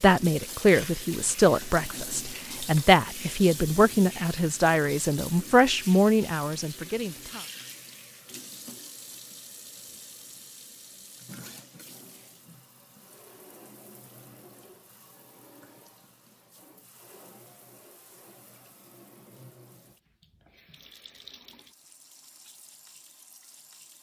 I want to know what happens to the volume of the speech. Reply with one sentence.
The loudness of the speech stays about the same.